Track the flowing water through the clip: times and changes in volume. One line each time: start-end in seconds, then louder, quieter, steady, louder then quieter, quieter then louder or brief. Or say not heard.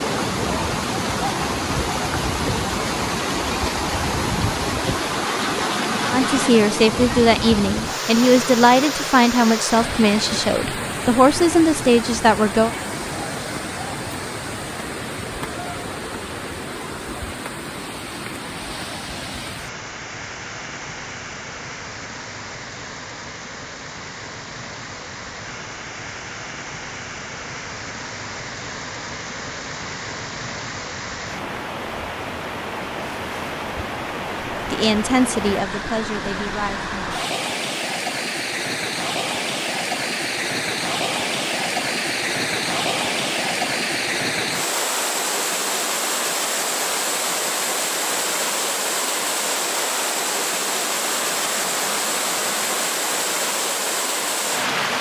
0.0-54.9 quieter then louder.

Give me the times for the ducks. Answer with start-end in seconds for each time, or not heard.
5.0-6.5, 51.0-53.0.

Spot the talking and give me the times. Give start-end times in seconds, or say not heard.
6.1-12.7, 34.7-37.2.